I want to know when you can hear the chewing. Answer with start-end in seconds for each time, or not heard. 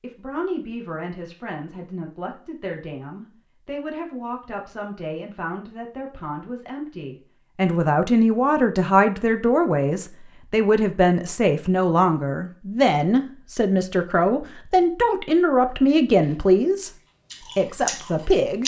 16.1-18.6.